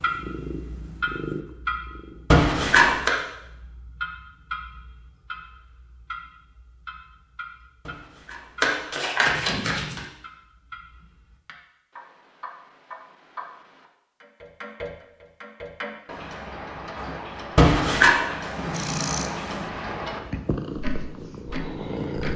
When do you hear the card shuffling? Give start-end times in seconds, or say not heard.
2.3-3.1, 7.8-10.0, 17.6-18.2.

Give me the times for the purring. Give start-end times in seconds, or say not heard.
0.0-2.5, 18.4-22.3.